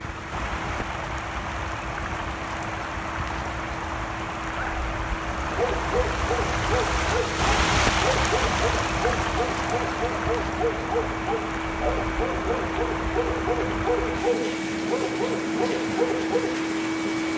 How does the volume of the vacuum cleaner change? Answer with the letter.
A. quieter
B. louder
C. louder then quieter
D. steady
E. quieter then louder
B.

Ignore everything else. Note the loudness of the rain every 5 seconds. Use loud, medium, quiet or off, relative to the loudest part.
medium, loud, medium, medium.